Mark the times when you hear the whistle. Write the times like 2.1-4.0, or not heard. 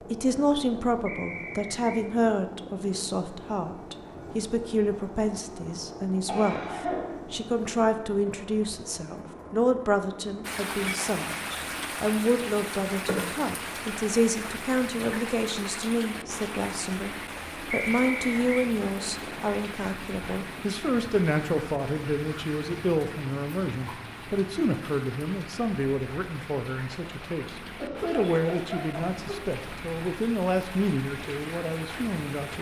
1.1-2.0, 17.7-18.7.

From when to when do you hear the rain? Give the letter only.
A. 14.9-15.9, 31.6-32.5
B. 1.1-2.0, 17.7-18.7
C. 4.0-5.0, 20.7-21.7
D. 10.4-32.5
D.